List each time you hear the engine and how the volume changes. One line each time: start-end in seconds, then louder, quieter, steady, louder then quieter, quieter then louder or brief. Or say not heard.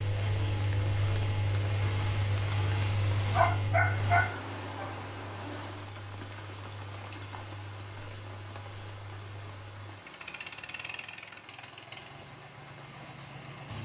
0.0-13.8 quieter.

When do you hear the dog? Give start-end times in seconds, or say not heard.
3.4-4.9.